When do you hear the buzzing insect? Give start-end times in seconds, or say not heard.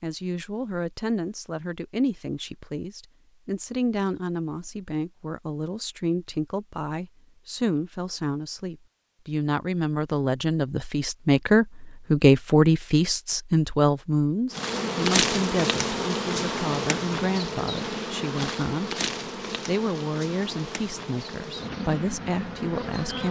14.5-23.2.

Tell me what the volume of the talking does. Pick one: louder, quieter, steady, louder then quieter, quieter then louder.
louder then quieter.